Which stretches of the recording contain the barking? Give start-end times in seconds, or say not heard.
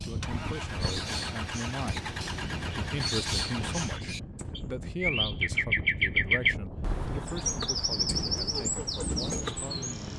not heard.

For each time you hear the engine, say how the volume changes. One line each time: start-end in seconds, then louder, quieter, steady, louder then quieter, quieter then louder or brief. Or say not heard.
0.0-4.5 steady
7.2-10.1 brief.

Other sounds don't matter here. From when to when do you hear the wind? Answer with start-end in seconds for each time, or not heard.
0.0-10.1.